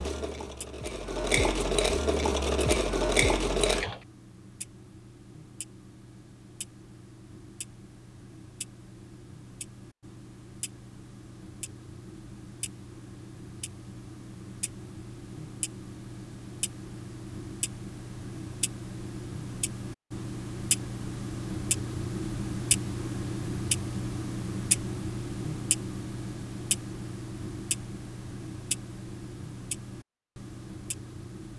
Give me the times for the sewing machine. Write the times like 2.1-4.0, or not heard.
0.0-4.0.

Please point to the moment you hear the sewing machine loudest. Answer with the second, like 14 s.
3 s.